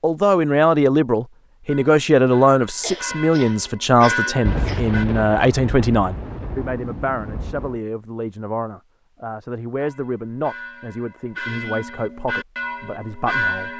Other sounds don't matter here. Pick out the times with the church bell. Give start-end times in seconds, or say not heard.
1.6-5.0, 9.8-13.7.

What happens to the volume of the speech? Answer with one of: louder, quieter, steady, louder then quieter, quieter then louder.
quieter.